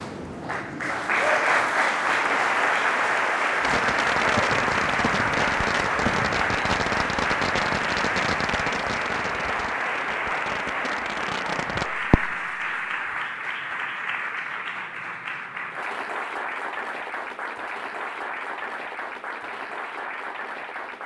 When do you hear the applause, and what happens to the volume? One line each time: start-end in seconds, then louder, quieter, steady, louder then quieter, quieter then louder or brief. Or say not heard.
0.0-21.0 quieter.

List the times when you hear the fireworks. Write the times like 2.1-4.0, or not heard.
3.6-12.3.